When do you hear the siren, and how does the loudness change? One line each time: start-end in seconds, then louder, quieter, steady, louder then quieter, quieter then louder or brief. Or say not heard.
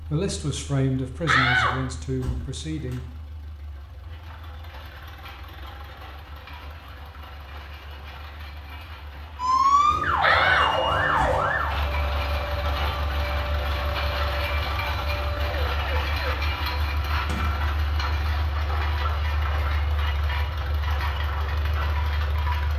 9.3-16.4 quieter.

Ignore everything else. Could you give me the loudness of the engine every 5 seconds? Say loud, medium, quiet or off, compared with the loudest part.
quiet, quiet, loud, loud, loud.